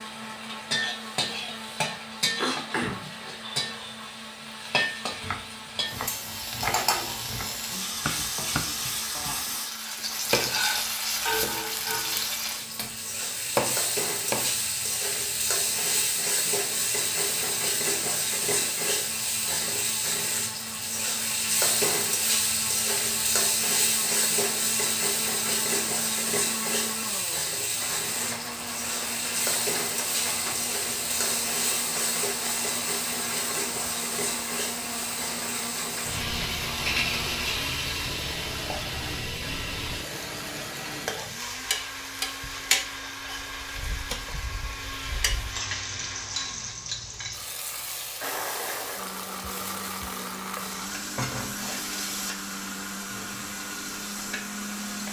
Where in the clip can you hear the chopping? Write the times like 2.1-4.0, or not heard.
5.0-14.6.